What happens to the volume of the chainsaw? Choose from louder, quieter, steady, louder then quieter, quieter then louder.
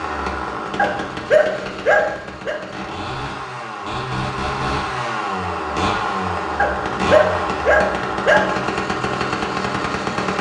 louder.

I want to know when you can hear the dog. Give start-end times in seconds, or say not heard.
0.8-2.5, 6.5-8.4.